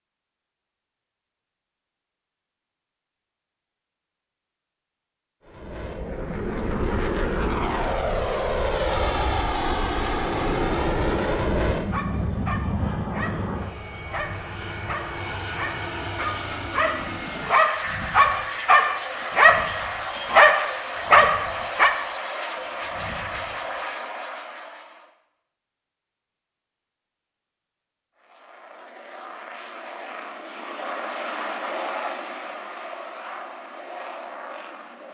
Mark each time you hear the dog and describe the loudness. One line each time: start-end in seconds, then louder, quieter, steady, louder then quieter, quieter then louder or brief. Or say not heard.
11.9-21.9 louder.